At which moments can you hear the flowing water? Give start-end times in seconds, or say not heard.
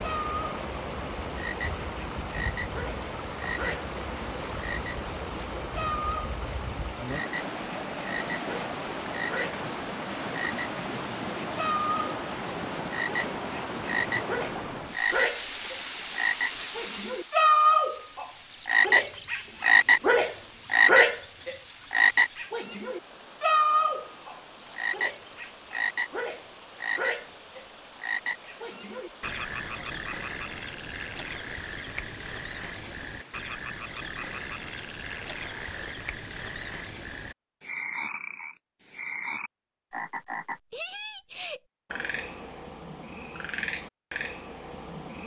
0.0-36.0.